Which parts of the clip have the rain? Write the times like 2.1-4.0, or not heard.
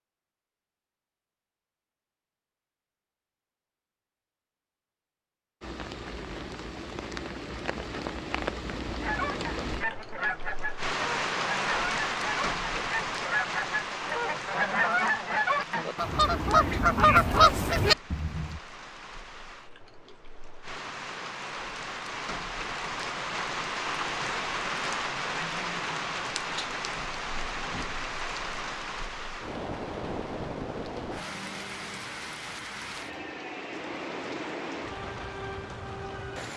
5.6-36.5.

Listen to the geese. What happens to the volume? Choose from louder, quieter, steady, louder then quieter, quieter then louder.
louder.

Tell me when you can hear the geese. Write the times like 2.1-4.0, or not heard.
9.0-18.6.